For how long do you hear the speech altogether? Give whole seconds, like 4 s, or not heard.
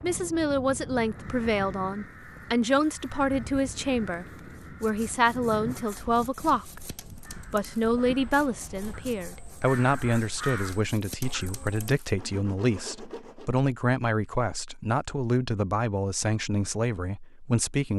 17 s.